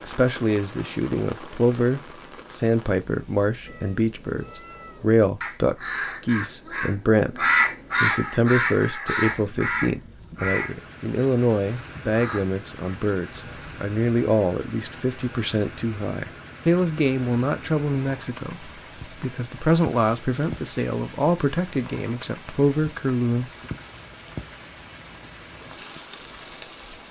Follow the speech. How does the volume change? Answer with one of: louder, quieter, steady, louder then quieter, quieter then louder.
steady.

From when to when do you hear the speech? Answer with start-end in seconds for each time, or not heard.
0.0-23.6.